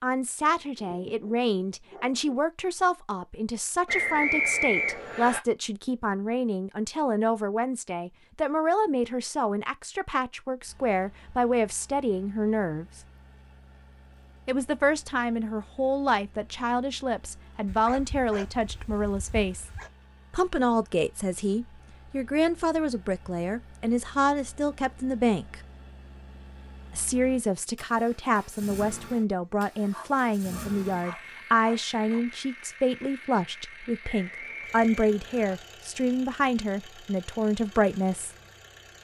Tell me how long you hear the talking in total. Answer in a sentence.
The talking can be heard for 35 seconds in total.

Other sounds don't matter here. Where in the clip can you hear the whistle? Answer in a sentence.
You can hear the whistle from 3.9 to 5.4 s and from 34.0 to 35.5 s.